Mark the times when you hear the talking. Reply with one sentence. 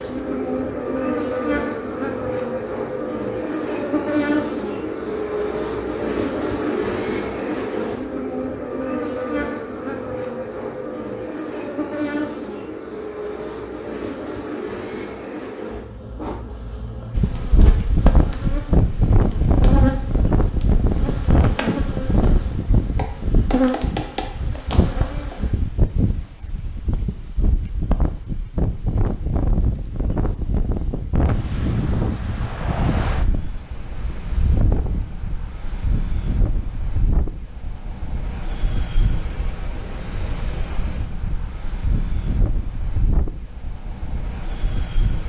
You can't hear the talking here.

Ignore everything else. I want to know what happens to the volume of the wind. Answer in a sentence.
The volume of the wind goes down.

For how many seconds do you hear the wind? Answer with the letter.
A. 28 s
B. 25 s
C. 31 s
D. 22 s
A.